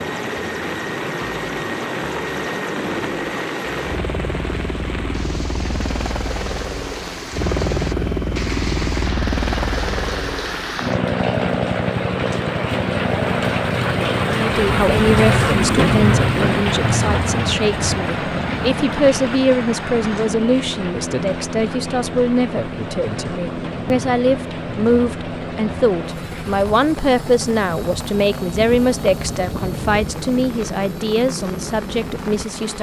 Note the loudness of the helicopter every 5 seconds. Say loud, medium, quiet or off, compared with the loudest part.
loud, loud, loud, loud, medium, medium, medium.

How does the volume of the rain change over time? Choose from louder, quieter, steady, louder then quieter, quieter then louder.
louder then quieter.